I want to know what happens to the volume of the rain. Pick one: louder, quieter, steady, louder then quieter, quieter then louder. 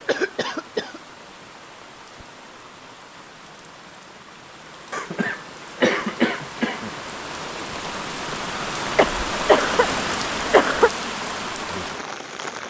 louder.